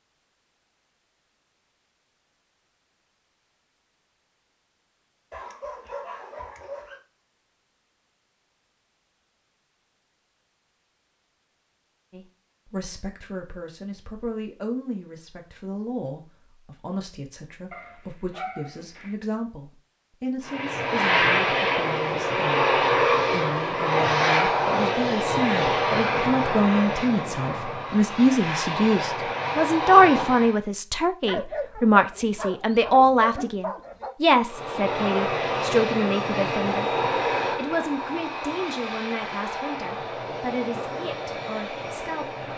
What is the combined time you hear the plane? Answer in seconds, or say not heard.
18 s.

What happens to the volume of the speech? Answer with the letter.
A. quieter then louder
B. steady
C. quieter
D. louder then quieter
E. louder
D.